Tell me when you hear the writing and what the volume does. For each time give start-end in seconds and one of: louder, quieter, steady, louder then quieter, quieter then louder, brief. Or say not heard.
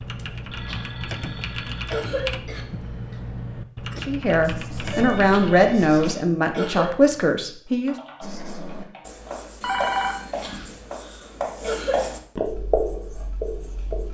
3.9-6.2 brief
8.2-14.0 louder.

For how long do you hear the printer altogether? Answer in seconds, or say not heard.
not heard.